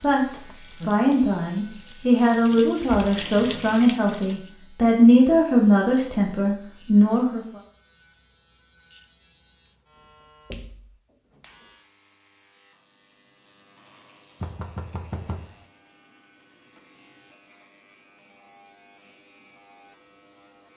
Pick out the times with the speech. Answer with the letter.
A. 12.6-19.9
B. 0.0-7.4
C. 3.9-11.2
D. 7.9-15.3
B.